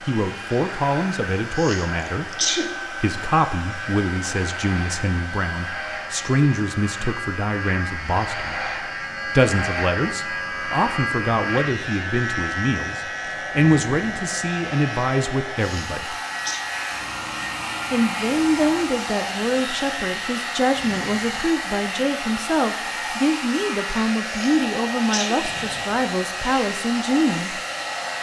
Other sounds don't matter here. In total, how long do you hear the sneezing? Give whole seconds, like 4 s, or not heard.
3 s.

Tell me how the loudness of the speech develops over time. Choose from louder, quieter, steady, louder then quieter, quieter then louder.
steady.